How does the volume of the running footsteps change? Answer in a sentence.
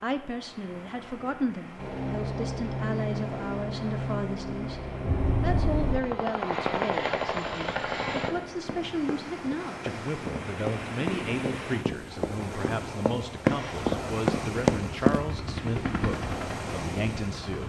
The volume of the running footsteps goes up.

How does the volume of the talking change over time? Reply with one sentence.
The loudness of the talking stays about the same.